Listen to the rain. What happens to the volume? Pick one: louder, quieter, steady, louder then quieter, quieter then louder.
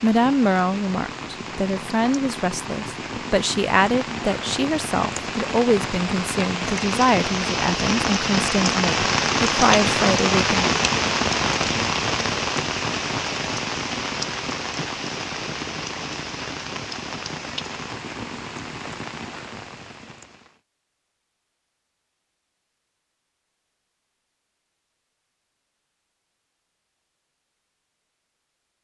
louder then quieter.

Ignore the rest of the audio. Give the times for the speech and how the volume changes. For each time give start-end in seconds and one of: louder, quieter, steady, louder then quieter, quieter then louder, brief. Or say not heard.
0.0-10.7 steady.